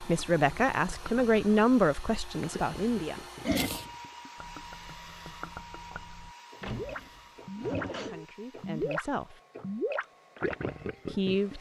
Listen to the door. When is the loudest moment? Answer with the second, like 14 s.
7 s.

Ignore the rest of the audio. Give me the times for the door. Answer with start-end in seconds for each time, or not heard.
6.6-8.3.